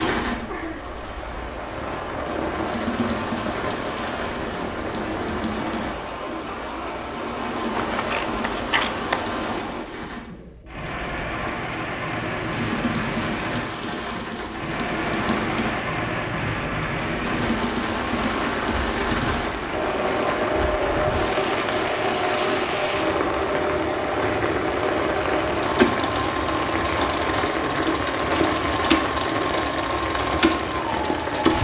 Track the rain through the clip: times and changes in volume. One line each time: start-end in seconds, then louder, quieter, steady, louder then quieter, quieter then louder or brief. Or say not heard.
0.2-31.5 louder.